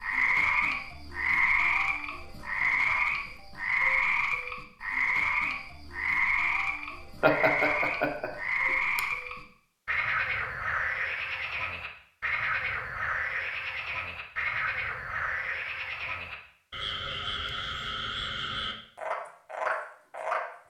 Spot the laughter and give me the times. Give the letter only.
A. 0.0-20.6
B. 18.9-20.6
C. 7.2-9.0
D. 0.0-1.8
C.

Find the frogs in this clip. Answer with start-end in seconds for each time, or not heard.
0.0-20.6.